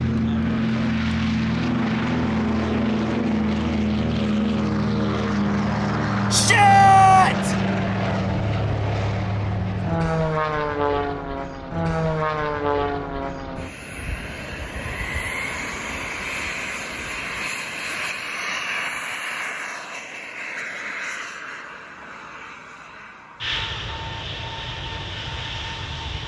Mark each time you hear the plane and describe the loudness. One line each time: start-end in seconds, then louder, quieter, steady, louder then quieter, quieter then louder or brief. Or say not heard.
0.0-26.2 quieter.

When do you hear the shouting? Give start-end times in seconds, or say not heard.
6.3-7.5.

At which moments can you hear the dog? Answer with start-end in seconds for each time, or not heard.
not heard.